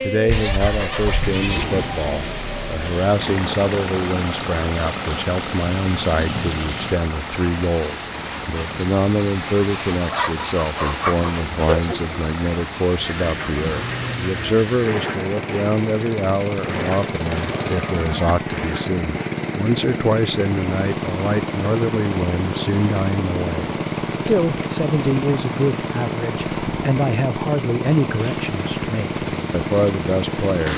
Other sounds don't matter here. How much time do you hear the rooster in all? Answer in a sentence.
The rooster can be heard for 2 seconds in total.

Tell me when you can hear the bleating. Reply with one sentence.
You can hear the bleating from 0.2 to 1.6 s and from 17.4 to 18.1 s.